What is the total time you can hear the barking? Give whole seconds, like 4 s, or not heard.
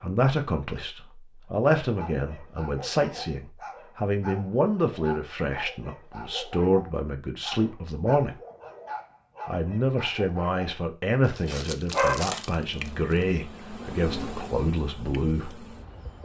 11 s.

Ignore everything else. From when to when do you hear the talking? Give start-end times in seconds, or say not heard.
0.0-8.3, 9.4-15.5.